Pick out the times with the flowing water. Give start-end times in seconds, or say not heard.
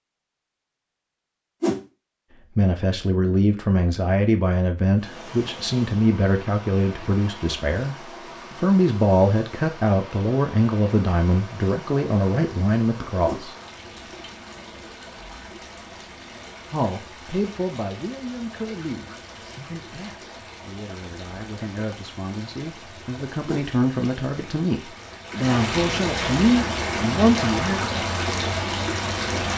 5.0-29.5.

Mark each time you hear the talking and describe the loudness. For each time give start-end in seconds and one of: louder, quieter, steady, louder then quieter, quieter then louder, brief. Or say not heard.
2.5-13.6 steady
16.7-27.8 quieter then louder.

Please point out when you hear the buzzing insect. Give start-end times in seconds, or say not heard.
not heard.